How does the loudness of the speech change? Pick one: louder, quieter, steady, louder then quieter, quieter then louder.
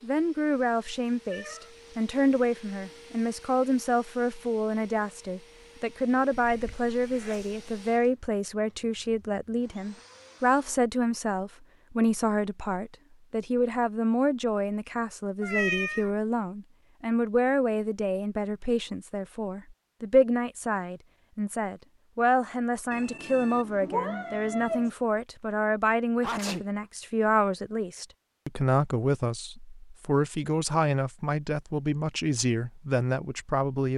steady.